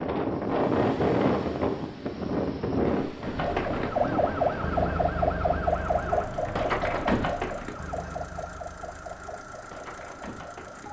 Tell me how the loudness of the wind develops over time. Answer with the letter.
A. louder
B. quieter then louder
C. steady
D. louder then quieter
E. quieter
E.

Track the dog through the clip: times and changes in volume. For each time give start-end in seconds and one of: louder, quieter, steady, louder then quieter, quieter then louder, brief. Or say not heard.
not heard.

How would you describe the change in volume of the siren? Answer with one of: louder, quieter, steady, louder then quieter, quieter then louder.
quieter.